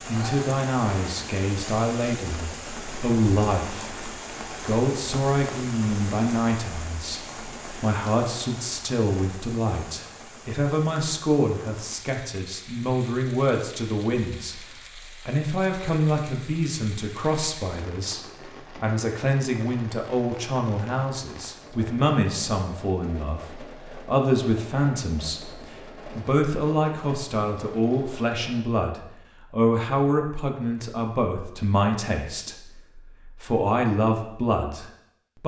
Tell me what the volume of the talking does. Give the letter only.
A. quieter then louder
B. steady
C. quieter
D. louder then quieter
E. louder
B.